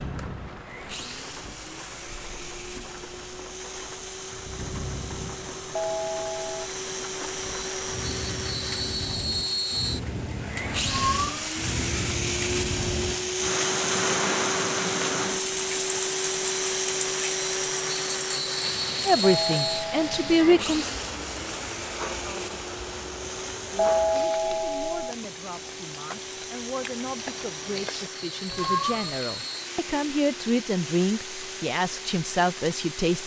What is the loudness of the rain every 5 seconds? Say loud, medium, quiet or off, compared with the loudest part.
medium, medium, loud, loud, medium, medium, medium.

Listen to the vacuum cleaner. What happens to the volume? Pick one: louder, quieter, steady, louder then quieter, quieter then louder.
louder then quieter.